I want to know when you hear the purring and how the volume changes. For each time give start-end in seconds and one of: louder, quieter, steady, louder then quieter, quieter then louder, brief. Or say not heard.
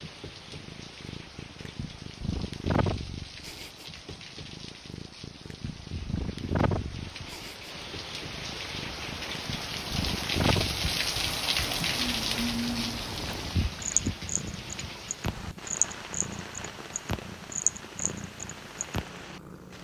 0.0-19.7 steady.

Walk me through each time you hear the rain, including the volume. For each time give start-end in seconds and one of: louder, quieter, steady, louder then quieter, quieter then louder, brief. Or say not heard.
0.0-19.7 louder then quieter.